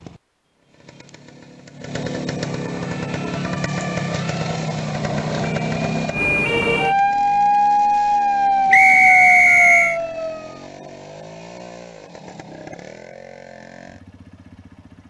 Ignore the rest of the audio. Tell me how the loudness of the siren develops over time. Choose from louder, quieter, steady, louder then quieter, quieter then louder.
louder.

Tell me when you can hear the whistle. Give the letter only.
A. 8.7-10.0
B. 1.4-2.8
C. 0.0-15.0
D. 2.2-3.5
A.